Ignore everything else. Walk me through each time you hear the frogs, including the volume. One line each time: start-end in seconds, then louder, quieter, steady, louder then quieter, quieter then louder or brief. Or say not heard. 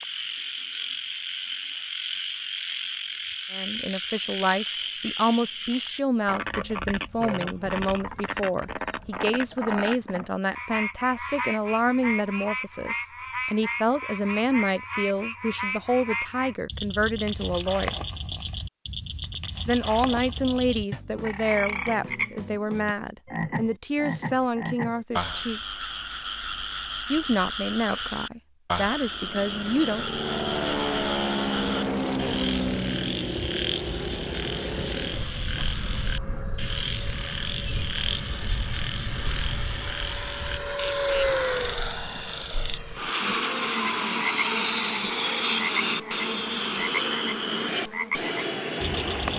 0.0-49.3 steady.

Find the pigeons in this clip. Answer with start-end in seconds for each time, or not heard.
not heard.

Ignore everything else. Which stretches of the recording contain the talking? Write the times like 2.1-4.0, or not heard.
3.5-17.9, 19.6-25.9, 27.1-30.1.